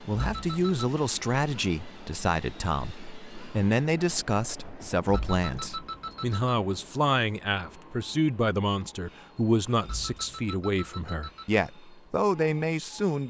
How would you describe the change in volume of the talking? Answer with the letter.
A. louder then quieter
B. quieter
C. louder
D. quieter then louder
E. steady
E.